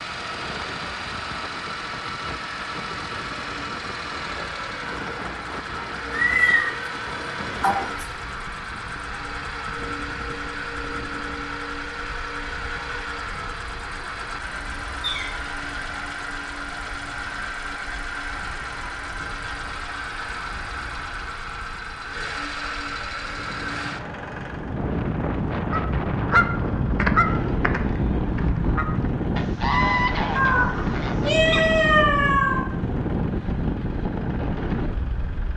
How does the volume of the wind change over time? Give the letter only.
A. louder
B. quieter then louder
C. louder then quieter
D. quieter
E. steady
B.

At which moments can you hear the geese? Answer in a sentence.
The geese can be heard from 25.7 to 32.0 s.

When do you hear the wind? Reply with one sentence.
You can hear the wind from 0.0 to 35.5 s.